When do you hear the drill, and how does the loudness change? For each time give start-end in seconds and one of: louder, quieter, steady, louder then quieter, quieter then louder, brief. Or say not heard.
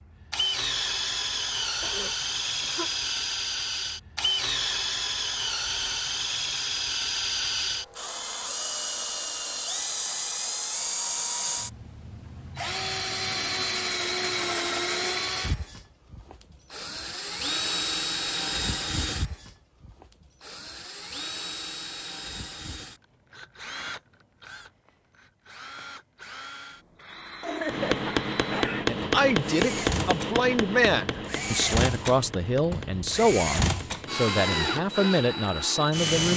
0.0-36.3 quieter then louder.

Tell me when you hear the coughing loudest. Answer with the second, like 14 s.
28 s.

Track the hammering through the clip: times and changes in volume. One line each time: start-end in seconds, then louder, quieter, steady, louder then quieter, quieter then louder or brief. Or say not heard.
27.6-35.0 quieter.